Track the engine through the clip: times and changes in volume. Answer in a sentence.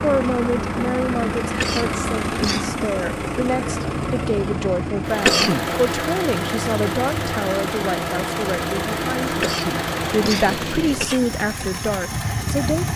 The engine can be heard from 0.0 to 12.9 s, at a steady volume.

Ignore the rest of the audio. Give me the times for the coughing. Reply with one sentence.
You can hear the coughing from 1.6 to 2.8 s, from 5.2 to 5.7 s and from 9.4 to 11.4 s.